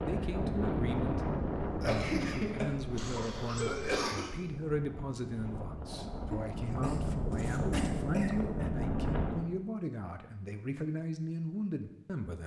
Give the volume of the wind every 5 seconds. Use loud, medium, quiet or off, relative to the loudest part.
loud, loud, off.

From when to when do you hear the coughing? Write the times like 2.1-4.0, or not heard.
1.8-4.3, 6.3-8.3.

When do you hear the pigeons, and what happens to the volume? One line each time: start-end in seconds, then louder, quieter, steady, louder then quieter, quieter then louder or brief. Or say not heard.
not heard.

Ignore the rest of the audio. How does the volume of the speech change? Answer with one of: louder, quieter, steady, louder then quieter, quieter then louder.
steady.